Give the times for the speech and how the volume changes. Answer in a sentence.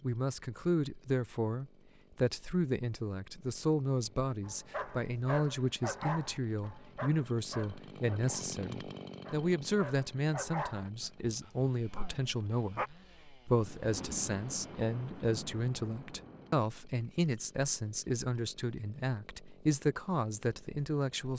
You can hear the speech from 0.0 to 21.3 s, at a steady volume.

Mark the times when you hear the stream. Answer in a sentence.
You can't hear the stream here.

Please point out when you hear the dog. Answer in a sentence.
The dog can be heard from 4.4 to 12.9 s.